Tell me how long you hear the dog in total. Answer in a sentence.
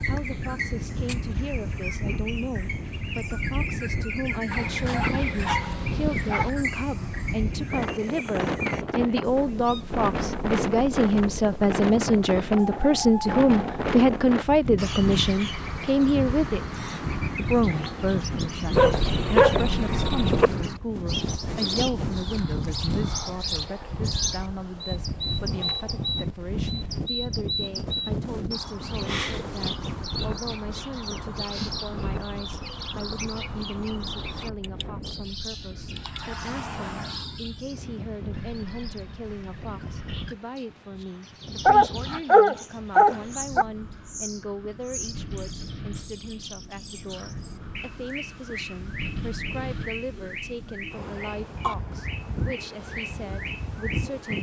You can hear the dog for 6 seconds altogether.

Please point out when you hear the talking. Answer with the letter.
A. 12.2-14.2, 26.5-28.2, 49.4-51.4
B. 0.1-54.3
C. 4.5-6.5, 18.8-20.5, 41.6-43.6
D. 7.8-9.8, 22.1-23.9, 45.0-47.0
B.